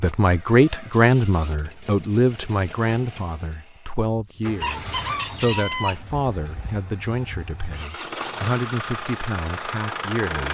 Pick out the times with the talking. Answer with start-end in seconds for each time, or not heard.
0.0-10.5.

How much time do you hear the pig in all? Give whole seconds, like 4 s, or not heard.
not heard.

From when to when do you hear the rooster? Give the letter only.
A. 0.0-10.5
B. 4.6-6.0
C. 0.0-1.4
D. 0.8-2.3
B.